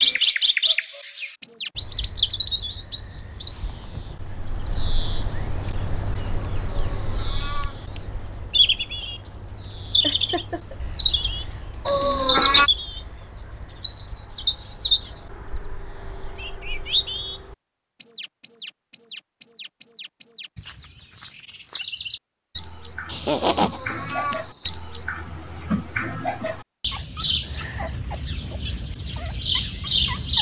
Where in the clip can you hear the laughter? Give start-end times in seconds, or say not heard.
10.0-10.8, 23.1-23.8.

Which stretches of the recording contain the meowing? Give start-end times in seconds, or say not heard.
6.7-8.1, 11.8-12.7, 23.6-24.8.